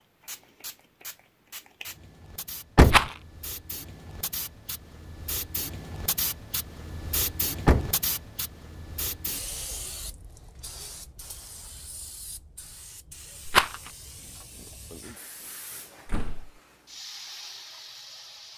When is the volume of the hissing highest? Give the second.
8 s.